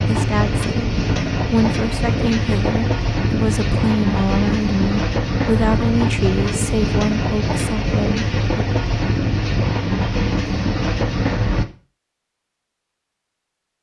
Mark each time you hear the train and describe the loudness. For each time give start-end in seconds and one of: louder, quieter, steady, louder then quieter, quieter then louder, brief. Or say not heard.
0.0-11.7 steady.